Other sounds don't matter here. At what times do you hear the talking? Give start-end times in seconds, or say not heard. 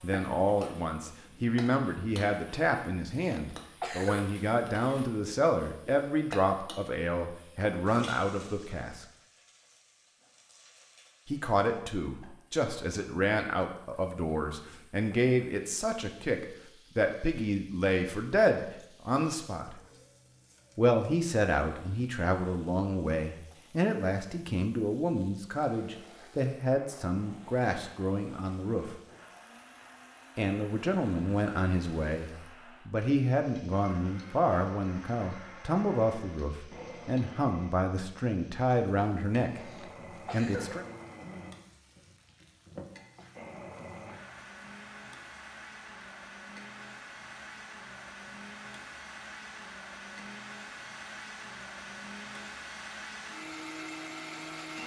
0.0-9.1, 11.2-19.8, 20.8-28.9, 30.4-39.6, 40.3-40.9.